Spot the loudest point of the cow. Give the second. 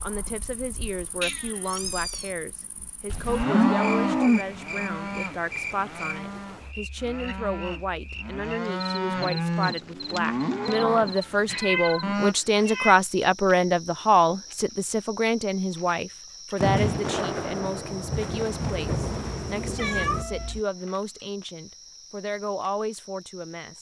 4 s.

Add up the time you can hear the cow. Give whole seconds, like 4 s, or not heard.
9 s.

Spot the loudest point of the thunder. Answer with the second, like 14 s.
17 s.